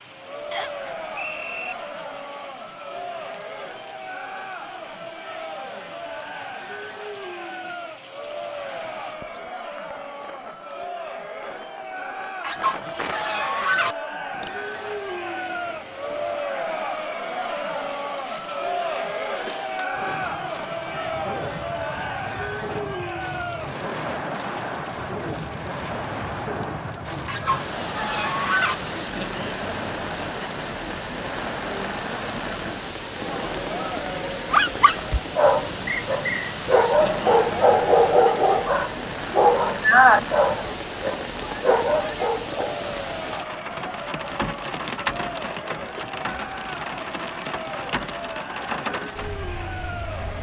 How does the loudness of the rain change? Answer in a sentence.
The loudness of the rain goes up.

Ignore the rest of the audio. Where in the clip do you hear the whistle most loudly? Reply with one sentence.
The loudest moment of the whistle is at 36 seconds.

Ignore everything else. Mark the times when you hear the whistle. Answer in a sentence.
The whistle can be heard from 0.5 to 1.8 s and from 35.9 to 36.5 s.